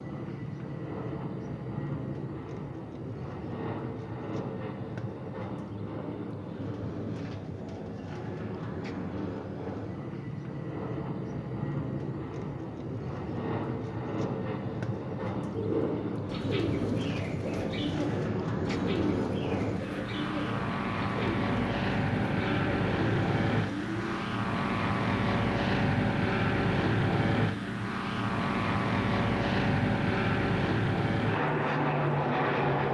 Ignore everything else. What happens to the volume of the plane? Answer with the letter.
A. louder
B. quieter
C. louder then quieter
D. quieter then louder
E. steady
A.